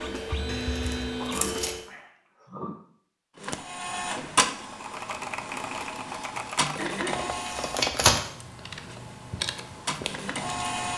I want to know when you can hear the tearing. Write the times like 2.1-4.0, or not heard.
0.5-1.8, 7.3-8.2.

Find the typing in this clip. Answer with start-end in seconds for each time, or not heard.
4.6-10.9.